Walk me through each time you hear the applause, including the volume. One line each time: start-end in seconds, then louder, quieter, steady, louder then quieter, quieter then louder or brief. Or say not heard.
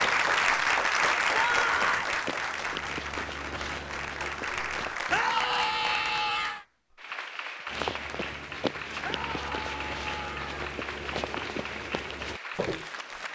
0.0-13.2 quieter.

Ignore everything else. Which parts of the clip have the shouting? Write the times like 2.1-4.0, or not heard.
1.3-2.0, 5.1-6.6, 9.0-10.7.